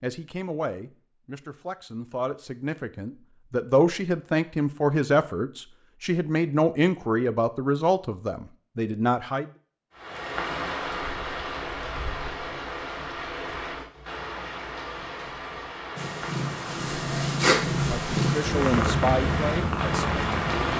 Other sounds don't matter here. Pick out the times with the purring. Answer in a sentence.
You can hear the purring from 15.9 to 20.7 s.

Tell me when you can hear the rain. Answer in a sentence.
The rain can be heard from 9.9 to 20.7 s.